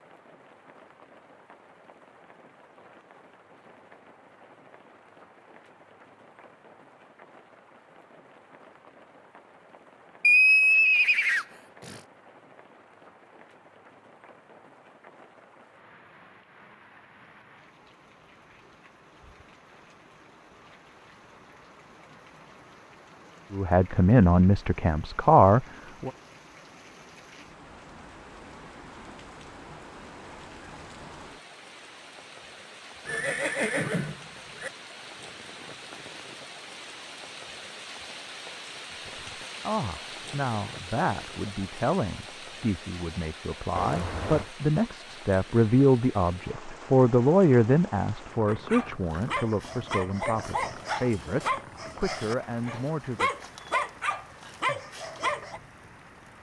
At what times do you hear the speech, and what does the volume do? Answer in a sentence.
The speech can be heard briefly from 23.5 to 26.1 s; and from 39.0 to 53.3 s, getting louder then quieter.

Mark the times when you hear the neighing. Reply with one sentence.
The neighing can be heard from 10.2 to 12.0 s, from 33.0 to 34.7 s and from 43.8 to 44.5 s.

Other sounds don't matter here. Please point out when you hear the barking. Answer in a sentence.
The barking can be heard from 48.5 to 55.6 s.